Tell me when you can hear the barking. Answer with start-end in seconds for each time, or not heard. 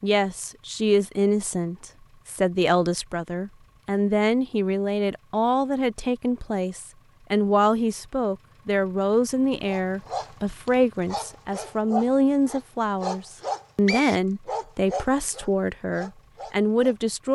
9.7-16.9.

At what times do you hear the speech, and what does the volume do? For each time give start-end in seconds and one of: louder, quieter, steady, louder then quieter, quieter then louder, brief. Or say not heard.
0.0-17.3 steady.